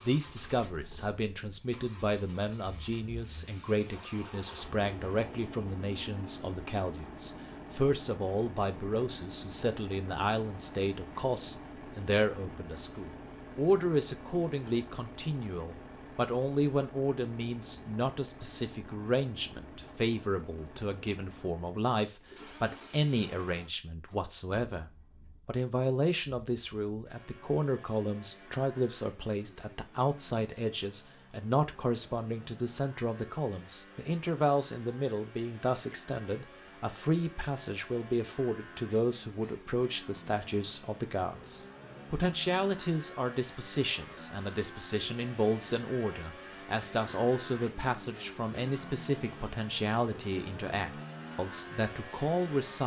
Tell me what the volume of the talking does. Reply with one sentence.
The loudness of the talking stays about the same.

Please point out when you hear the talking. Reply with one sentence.
The talking can be heard from 0.0 to 52.8 s.